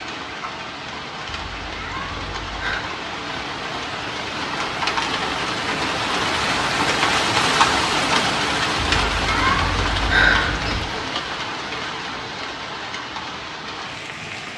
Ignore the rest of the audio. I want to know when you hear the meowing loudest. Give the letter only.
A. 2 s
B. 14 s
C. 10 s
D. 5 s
C.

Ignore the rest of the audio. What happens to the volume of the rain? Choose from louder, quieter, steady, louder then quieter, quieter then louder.
louder then quieter.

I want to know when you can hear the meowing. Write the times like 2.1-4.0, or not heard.
1.2-2.9, 9.0-10.8.